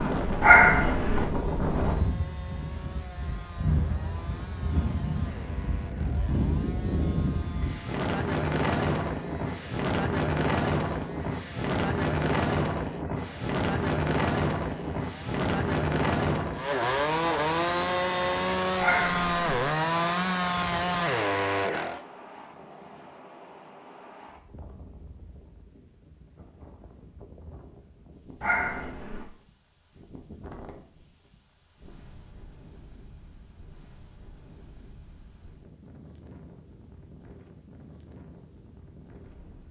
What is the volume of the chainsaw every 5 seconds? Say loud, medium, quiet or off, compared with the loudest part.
quiet, quiet, quiet, loud, loud, off, off, off.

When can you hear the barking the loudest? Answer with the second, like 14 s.
1 s.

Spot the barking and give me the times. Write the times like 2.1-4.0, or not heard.
0.4-1.2, 18.8-19.6, 28.4-29.2.